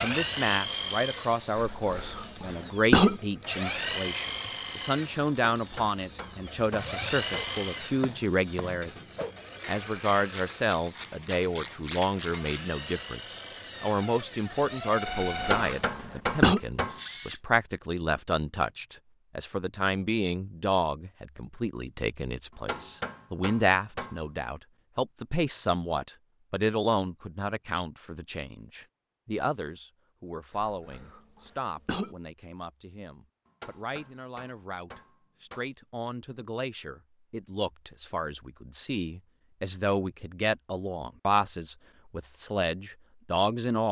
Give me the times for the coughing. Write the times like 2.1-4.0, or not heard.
1.6-3.2, 15.1-16.6, 30.5-32.1.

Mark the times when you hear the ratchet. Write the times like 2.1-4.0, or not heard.
6.7-12.7.